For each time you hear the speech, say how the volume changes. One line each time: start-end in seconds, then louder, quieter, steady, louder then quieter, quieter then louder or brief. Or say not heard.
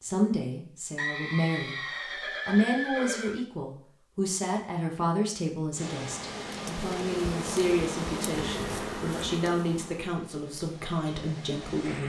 0.0-1.8 brief
2.5-12.0 steady.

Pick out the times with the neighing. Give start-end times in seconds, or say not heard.
0.9-3.5, 8.3-9.5.